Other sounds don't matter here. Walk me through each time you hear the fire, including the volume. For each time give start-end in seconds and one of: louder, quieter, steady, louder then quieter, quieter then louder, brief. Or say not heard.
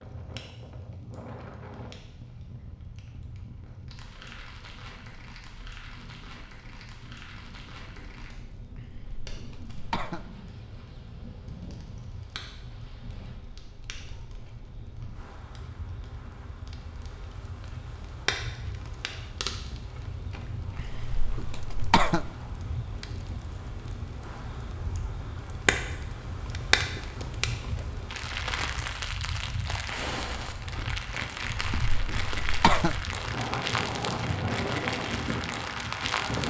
0.0-36.4 louder.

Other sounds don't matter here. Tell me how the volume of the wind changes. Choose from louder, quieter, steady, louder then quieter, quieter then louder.
louder.